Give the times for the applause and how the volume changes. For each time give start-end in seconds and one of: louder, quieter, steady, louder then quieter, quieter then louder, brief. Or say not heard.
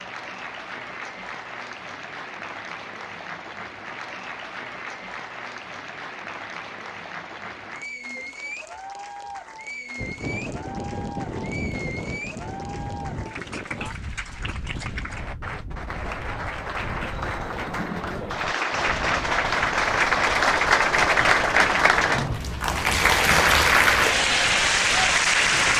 0.0-25.7 louder.